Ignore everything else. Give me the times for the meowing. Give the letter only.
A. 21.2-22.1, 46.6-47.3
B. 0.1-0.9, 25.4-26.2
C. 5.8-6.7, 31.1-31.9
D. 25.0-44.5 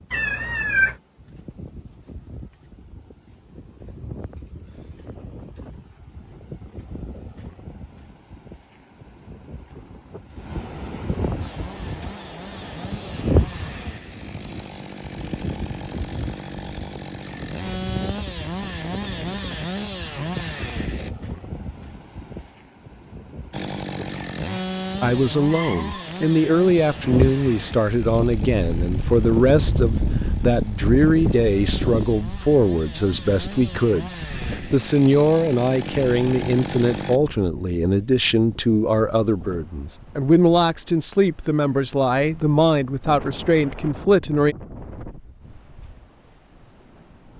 B.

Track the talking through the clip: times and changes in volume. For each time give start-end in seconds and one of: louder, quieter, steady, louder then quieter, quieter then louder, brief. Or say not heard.
25.0-44.5 steady.